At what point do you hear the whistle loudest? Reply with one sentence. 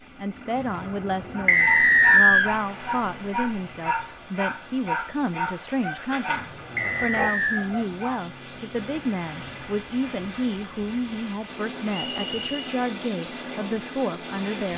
The volume of the whistle peaks at 2 seconds.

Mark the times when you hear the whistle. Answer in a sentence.
You can hear the whistle from 1.4 to 2.5 s, from 6.8 to 7.7 s and from 11.9 to 12.8 s.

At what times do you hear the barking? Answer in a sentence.
The barking can be heard from 1.3 to 8.2 s.